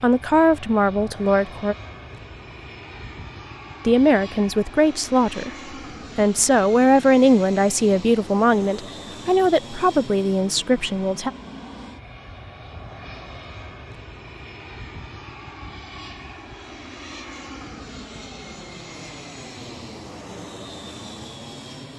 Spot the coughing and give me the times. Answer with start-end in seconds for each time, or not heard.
not heard.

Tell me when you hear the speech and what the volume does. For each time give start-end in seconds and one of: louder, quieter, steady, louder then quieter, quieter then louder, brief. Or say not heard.
0.0-1.8 brief
3.9-5.5 brief
6.2-11.3 quieter.